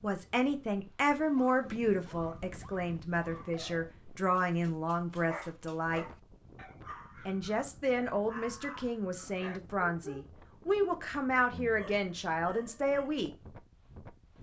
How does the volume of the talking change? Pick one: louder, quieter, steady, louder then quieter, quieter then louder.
steady.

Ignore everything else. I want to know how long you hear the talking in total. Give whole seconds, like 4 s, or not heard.
12 s.